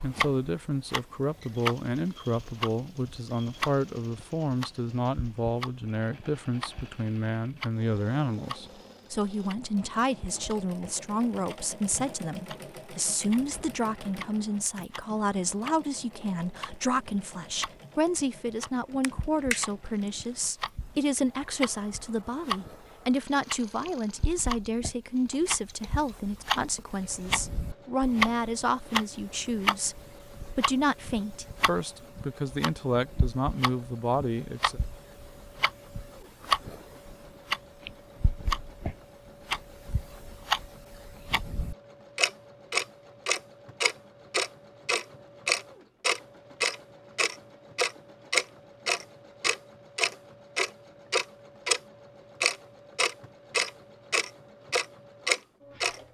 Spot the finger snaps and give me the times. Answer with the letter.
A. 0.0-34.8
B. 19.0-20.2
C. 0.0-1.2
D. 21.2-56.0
B.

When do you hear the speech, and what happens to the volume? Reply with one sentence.
The speech can be heard from 0.0 to 34.8 s, at a steady volume.